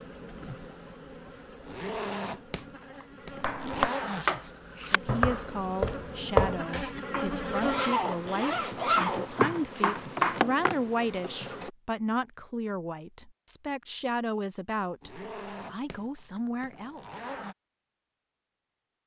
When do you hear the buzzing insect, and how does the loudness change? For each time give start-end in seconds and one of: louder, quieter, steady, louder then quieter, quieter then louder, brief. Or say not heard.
0.0-11.7 louder.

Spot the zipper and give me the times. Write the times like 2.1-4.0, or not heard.
1.6-4.2, 7.6-9.3, 15.0-17.6.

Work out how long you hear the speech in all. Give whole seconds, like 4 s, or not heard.
12 s.